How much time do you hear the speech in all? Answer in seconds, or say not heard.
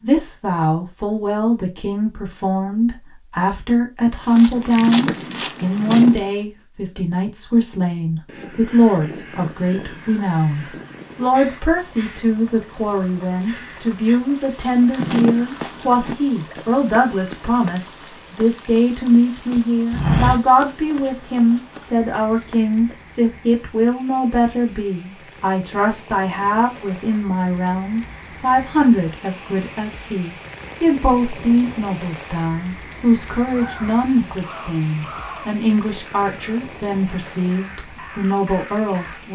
39 s.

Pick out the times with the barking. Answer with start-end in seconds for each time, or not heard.
not heard.